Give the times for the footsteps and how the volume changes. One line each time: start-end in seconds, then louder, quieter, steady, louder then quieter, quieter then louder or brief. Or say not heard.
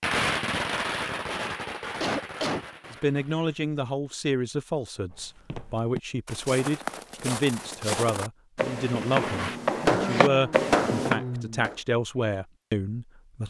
5.1-11.2 louder.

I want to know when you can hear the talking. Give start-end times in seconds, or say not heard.
2.9-13.4.